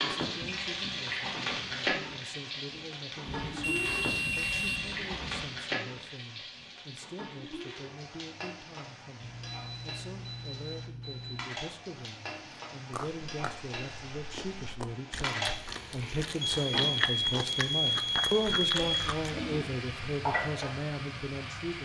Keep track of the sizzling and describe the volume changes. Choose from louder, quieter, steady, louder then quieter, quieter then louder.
quieter then louder.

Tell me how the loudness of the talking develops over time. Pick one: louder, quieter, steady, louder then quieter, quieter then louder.
louder.